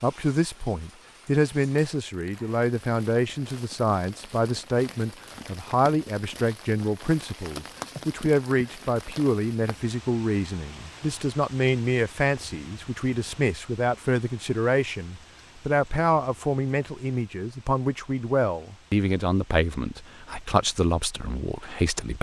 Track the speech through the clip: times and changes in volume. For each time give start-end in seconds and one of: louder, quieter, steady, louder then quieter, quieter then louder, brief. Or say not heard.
0.0-22.1 steady.